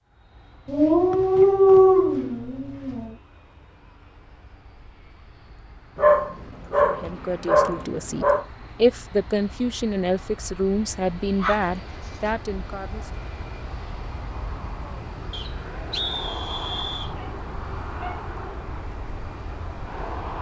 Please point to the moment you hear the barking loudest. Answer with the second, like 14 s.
2 s.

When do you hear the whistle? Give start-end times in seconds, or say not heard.
1.1-1.8, 15.3-17.1.